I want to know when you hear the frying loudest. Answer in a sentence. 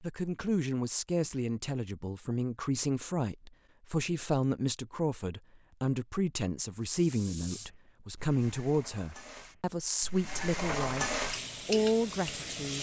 The volume of the frying peaks at 11 seconds.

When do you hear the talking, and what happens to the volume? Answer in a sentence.
You can hear the talking from 0.0 to 12.7 s, at a steady volume.